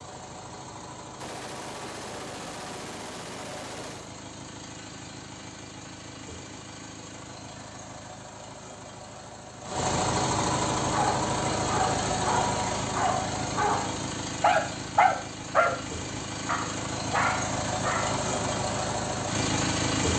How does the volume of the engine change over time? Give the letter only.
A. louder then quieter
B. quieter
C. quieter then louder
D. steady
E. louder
E.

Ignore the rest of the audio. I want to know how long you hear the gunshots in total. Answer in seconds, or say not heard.
3 s.